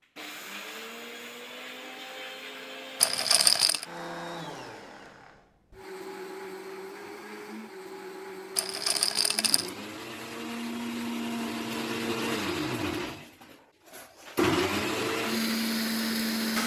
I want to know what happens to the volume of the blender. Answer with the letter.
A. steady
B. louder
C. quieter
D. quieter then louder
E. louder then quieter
B.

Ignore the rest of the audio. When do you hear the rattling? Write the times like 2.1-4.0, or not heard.
3.0-3.9, 8.6-9.7.